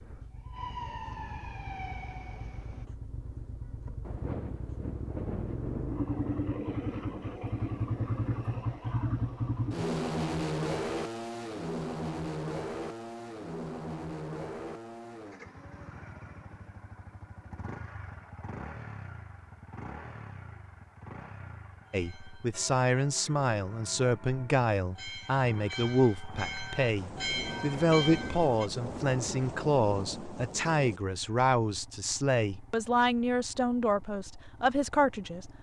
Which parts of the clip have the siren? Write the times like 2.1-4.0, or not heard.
0.1-2.9.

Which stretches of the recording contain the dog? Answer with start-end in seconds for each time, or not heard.
not heard.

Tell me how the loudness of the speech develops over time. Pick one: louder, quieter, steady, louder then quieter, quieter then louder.
steady.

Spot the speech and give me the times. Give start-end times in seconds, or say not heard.
21.9-35.5.